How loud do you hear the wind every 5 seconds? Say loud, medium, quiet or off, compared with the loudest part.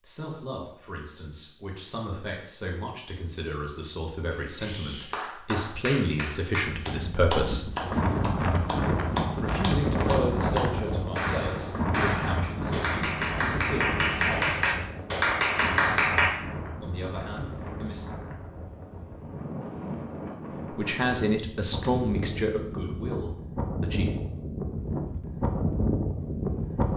off, loud, loud, medium, medium, loud.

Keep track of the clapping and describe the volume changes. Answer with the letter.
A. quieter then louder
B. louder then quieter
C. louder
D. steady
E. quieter
C.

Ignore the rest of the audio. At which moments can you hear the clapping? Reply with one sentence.
The clapping can be heard from 4.3 to 16.3 s.